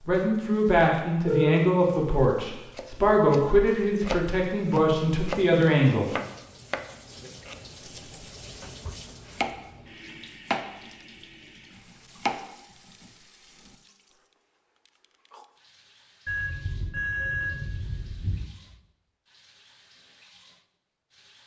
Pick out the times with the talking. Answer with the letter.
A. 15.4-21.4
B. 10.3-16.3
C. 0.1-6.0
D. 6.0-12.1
C.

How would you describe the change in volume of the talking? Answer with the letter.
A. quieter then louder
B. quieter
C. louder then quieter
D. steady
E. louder
D.